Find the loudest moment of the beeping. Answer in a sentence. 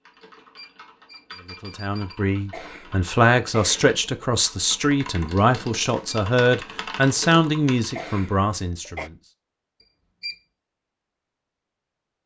The volume of the beeping peaks at 10 seconds.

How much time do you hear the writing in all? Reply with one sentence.
The writing can't be heard in this clip.